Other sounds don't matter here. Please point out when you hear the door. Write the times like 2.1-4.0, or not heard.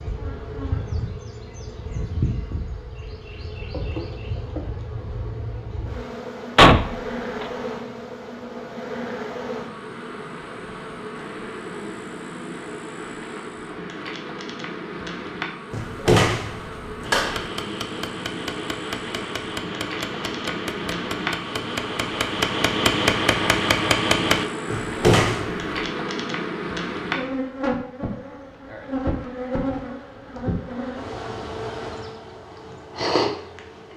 6.5-7.5, 15.7-17.5, 24.7-25.6.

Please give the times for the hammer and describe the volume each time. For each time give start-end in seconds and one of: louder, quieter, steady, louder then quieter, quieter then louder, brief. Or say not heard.
17.0-24.4 louder.